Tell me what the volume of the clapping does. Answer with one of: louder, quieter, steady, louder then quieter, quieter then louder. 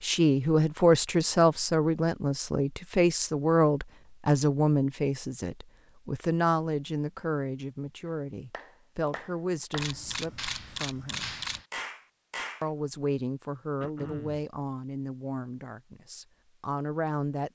louder.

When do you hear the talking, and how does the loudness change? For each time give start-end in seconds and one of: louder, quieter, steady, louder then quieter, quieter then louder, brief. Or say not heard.
0.0-11.3 quieter
12.6-17.5 quieter then louder.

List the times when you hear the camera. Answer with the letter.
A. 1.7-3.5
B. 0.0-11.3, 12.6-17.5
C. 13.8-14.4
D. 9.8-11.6
D.